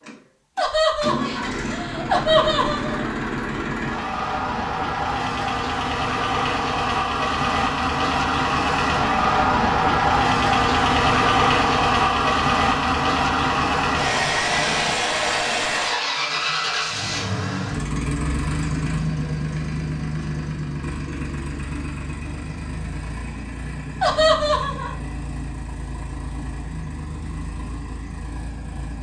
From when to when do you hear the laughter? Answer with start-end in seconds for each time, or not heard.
0.6-3.1, 24.0-24.9.